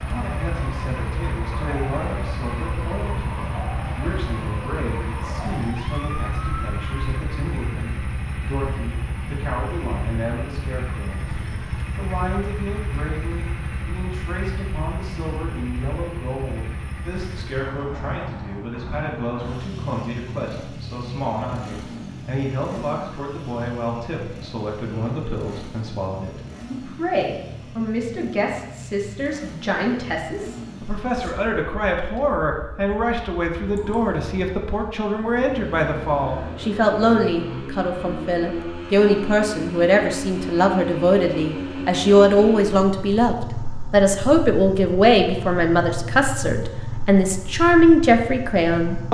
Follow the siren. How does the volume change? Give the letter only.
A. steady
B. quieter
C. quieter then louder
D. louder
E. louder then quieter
A.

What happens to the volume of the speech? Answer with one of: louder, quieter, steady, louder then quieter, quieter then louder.
louder.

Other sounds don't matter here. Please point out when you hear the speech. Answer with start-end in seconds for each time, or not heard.
0.0-49.0.